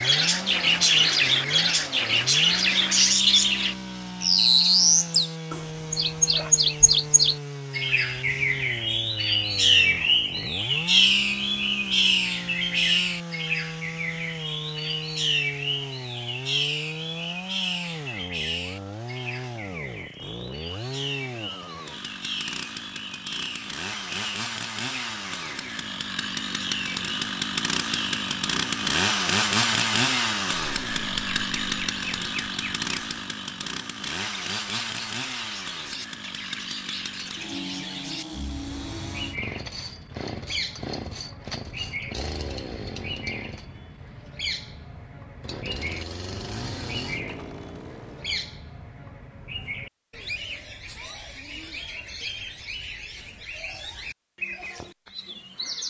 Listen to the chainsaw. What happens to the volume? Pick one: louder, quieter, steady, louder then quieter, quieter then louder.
louder then quieter.